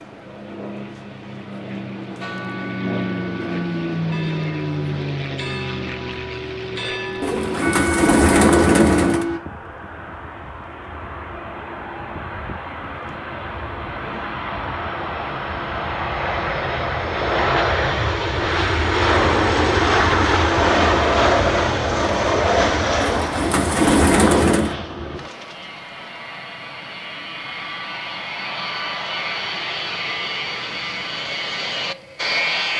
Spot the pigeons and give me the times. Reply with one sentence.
The pigeons can be heard from 7.2 to 9.2 s and from 23.0 to 24.8 s.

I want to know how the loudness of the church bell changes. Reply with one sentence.
The volume of the church bell goes up.